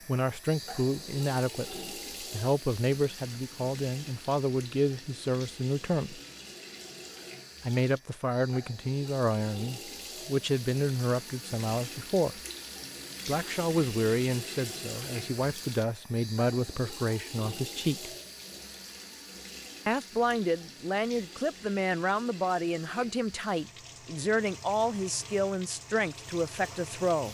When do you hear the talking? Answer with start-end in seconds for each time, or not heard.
0.1-6.2, 7.6-12.4, 13.2-18.1, 19.9-27.3.